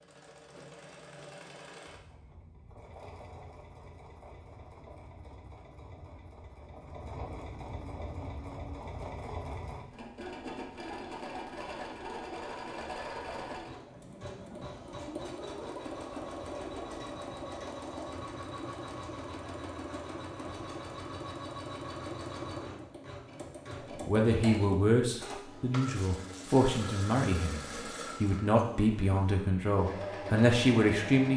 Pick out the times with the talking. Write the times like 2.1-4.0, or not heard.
24.1-31.3.